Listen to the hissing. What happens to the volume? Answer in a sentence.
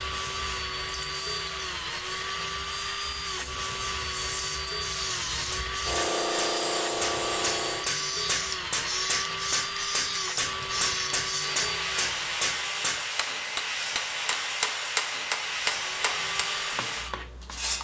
The loudness of the hissing goes up.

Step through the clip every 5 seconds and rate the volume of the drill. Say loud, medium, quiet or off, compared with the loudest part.
loud, loud, loud, medium.